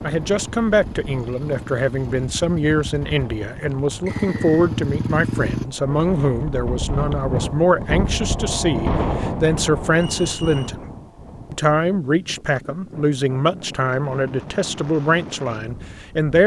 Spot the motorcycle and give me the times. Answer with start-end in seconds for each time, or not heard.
0.0-5.7.